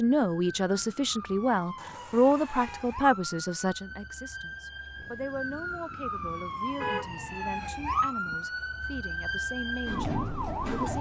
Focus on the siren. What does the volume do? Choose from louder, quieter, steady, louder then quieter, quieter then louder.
louder.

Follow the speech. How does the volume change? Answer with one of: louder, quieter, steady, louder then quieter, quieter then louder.
quieter.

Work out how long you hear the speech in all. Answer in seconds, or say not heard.
11 s.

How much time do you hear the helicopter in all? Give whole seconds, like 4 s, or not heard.
not heard.